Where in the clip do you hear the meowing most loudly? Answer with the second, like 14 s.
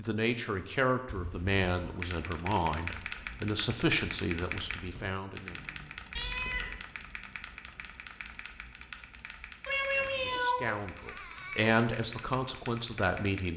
10 s.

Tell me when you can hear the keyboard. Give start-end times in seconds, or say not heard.
1.9-13.5.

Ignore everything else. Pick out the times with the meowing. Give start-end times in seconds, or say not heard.
1.1-2.0, 6.2-6.8, 9.7-11.8.